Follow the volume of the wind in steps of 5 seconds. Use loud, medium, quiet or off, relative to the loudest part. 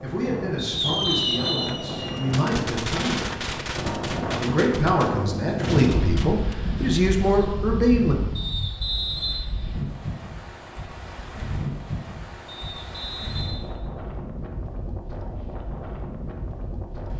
loud, loud, medium, medium.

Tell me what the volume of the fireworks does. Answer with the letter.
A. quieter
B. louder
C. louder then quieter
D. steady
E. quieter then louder
A.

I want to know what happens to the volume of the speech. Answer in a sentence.
The volume of the speech goes up.